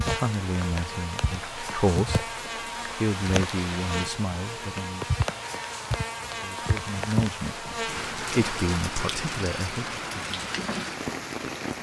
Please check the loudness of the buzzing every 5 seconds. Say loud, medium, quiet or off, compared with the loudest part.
loud, loud, off.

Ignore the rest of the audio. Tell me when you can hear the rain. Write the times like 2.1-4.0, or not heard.
0.0-11.7.